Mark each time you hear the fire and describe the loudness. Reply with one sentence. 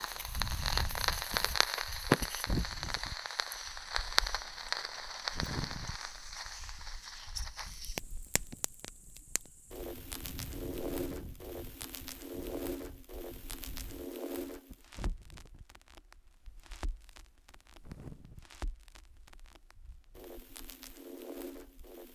You can hear the fire from 0.0 to 22.0 s, getting quieter.